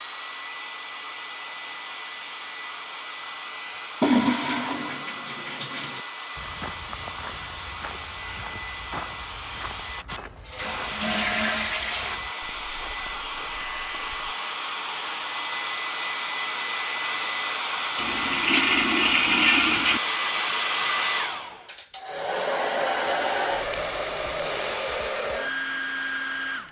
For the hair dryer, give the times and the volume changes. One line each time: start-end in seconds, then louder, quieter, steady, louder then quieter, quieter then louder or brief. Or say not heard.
0.0-26.6 louder.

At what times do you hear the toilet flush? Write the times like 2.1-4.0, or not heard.
4.0-6.0, 10.2-12.2, 17.9-20.0.